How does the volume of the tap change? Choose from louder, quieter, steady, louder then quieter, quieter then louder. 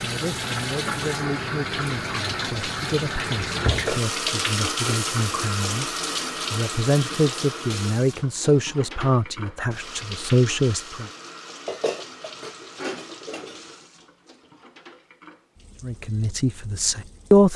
quieter.